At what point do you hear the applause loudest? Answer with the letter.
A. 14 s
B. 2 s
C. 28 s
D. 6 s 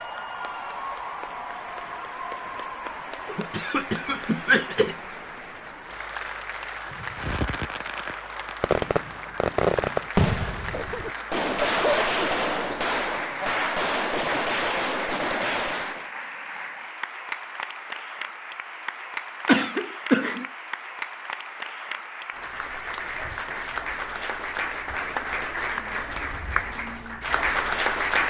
C.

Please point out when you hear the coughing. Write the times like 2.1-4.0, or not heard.
3.2-5.0, 10.7-12.8, 19.4-20.4.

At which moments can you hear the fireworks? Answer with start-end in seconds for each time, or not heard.
7.2-16.1.